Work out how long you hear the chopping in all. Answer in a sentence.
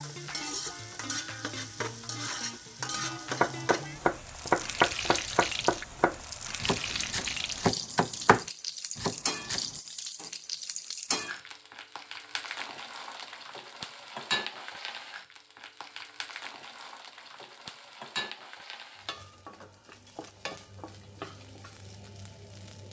The chopping can be heard for 6 seconds in total.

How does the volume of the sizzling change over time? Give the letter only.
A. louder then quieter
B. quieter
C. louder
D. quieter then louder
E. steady
B.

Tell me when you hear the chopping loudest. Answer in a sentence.
The volume of the chopping peaks at 5 seconds.